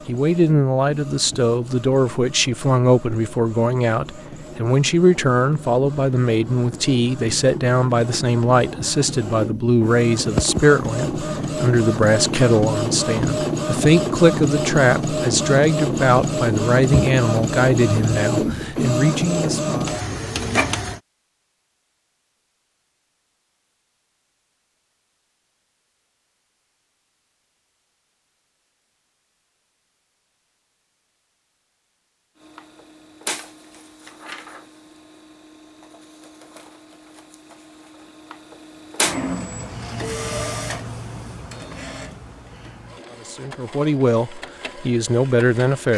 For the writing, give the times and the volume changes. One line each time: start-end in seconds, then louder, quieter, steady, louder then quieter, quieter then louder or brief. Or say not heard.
not heard.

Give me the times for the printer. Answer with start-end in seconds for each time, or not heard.
0.0-21.0, 32.4-45.9.